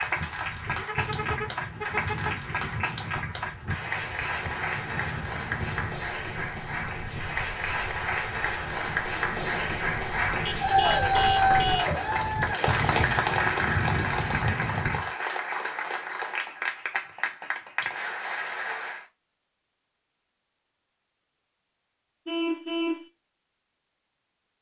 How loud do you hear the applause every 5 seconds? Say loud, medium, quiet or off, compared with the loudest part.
medium, medium, loud, medium, off.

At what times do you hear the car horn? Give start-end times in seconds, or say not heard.
0.8-2.4, 10.4-11.9, 22.2-23.1.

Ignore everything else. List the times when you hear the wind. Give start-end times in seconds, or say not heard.
0.0-15.1.